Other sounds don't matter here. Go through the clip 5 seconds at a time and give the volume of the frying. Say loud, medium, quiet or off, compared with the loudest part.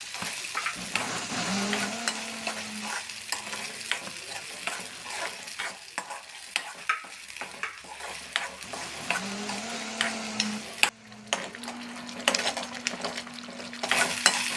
medium, medium, loud.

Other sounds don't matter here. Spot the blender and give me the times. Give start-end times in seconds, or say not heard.
0.0-5.2, 8.6-14.5.